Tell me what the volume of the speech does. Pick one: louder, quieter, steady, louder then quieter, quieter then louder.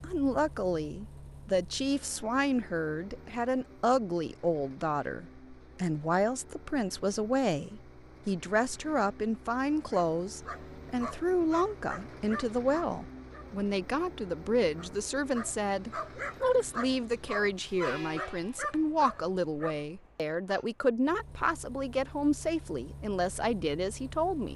steady.